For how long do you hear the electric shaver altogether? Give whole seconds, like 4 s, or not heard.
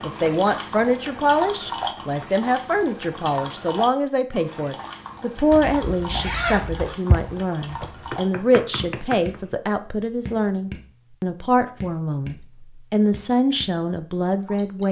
not heard.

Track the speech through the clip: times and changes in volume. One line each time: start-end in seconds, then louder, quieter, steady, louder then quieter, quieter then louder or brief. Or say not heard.
0.0-14.8 steady.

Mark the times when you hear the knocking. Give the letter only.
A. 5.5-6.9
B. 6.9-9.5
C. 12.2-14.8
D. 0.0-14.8
B.